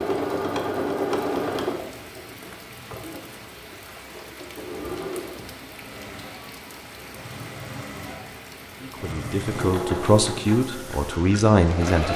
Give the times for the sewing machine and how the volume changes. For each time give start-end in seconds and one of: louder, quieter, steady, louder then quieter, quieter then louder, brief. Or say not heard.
0.0-12.1 quieter then louder.